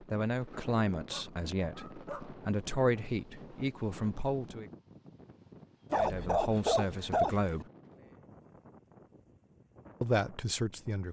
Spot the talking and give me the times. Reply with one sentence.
The talking can be heard from 0.1 to 4.7 s, from 5.9 to 7.7 s and from 10.0 to 11.0 s.